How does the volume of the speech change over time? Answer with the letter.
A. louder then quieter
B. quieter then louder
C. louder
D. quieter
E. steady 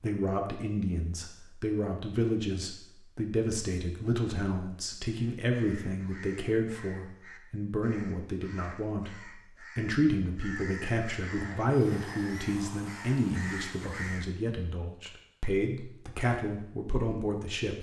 E.